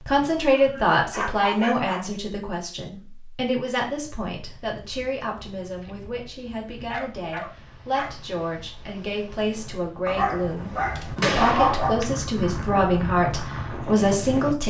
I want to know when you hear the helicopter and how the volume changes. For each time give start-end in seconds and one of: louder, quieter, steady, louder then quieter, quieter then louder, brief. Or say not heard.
not heard.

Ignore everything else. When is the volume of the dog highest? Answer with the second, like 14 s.
12 s.